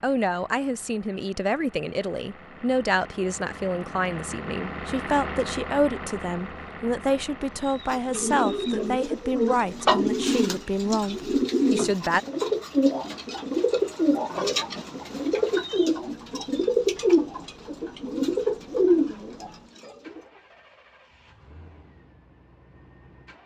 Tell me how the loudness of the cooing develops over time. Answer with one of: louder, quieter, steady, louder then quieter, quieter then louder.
steady.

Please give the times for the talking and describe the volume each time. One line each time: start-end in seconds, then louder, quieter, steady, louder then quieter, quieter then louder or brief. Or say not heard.
0.0-12.2 steady.